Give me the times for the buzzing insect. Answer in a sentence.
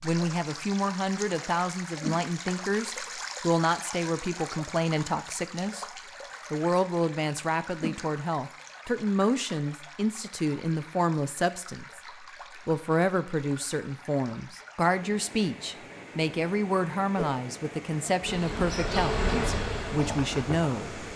The buzzing insect can be heard from 18.2 to 21.1 s.